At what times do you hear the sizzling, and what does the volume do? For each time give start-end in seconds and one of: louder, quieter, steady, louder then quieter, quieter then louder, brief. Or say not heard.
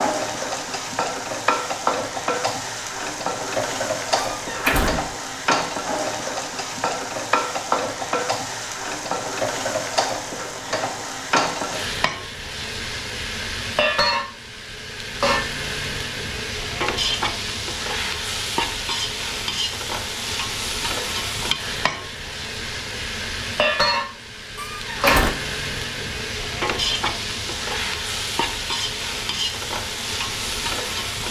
0.0-31.2 steady.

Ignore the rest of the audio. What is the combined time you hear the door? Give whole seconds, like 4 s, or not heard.
2 s.